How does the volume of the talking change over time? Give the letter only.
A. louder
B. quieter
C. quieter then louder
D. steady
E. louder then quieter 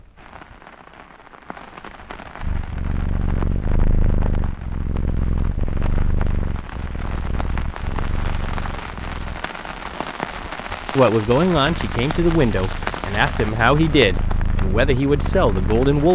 D.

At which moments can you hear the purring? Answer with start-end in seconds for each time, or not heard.
2.4-9.4, 11.6-15.9.